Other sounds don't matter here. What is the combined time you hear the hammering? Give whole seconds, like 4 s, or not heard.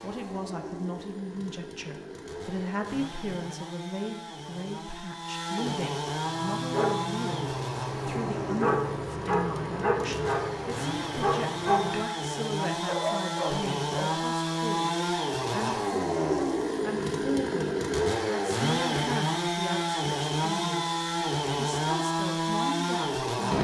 not heard.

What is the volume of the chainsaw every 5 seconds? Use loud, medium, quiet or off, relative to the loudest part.
quiet, medium, loud, loud, loud.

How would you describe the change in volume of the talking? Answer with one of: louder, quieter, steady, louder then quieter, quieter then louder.
steady.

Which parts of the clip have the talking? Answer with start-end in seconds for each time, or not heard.
0.0-23.2.